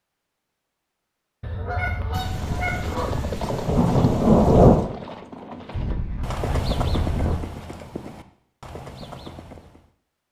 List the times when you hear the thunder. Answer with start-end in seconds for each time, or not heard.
2.1-4.9.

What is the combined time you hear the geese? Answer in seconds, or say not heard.
4 s.